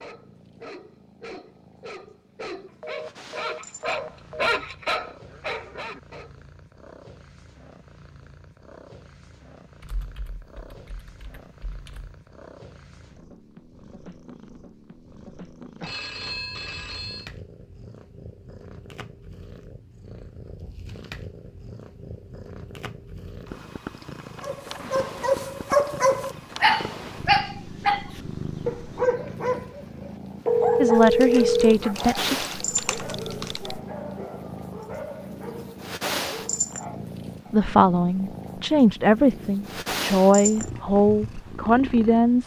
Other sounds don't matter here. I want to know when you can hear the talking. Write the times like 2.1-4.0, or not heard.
30.8-32.4, 37.5-42.4.